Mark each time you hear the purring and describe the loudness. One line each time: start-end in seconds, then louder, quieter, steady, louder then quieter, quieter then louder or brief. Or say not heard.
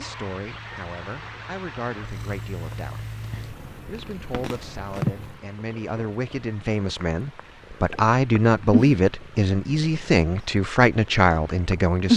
0.0-12.1 louder then quieter.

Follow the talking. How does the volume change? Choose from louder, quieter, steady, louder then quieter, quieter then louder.
louder.